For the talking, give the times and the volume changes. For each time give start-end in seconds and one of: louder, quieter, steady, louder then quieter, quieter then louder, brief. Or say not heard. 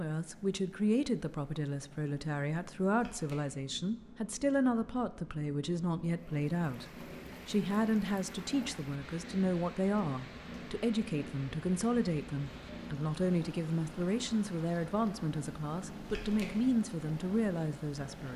0.0-18.3 steady.